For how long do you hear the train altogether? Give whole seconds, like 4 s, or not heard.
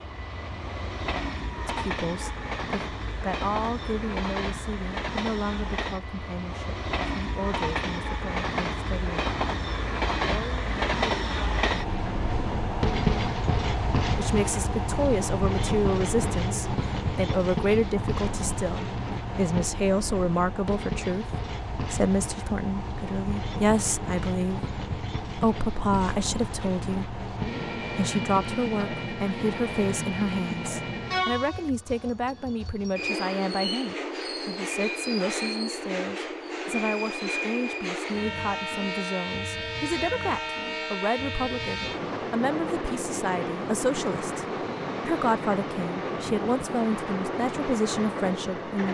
49 s.